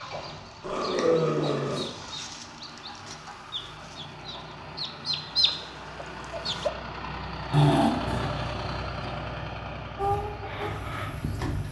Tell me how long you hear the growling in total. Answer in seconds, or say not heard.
2 s.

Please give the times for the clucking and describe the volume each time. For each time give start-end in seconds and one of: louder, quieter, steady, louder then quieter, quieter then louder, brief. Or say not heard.
0.0-6.7 louder
9.9-11.6 brief.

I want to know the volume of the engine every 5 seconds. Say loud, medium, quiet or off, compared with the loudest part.
medium, loud, medium.